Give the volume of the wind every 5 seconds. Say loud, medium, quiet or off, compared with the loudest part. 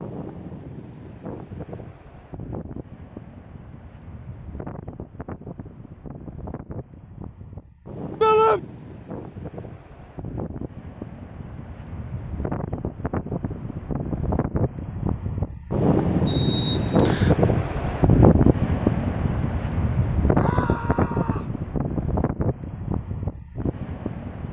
quiet, quiet, medium, loud, medium.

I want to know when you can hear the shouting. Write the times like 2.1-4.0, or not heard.
8.2-8.6, 20.4-21.6.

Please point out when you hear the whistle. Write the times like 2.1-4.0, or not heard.
16.2-17.4.